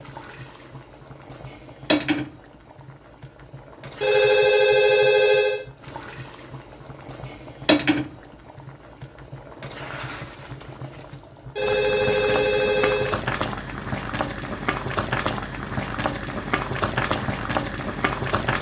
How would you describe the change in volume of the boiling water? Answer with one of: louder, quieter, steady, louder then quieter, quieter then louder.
quieter then louder.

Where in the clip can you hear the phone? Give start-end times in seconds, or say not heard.
4.0-5.6, 11.6-13.2.